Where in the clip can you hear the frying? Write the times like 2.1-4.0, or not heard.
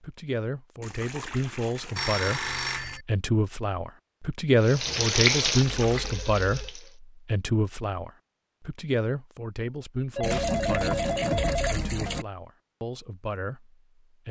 4.6-7.0.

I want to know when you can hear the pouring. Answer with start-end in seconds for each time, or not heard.
0.8-3.0, 5.6-6.2, 10.2-12.2.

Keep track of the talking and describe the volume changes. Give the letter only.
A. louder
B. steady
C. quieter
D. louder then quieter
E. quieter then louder
D.